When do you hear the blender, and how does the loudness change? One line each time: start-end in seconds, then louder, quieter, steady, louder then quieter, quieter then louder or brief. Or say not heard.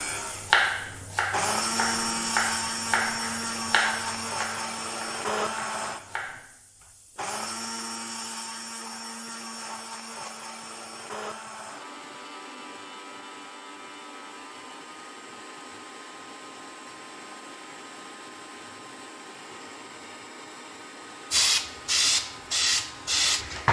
0.0-23.6 quieter.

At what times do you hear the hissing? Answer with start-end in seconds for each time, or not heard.
21.3-23.6.